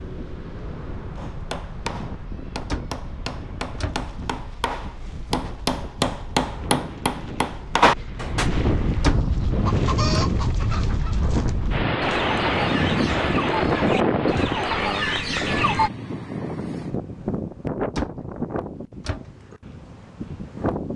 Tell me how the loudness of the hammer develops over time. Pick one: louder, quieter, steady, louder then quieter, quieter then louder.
louder.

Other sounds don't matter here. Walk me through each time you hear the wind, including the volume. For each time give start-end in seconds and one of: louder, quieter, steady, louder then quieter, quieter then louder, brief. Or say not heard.
0.0-20.9 louder then quieter.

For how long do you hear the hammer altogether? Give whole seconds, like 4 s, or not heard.
7 s.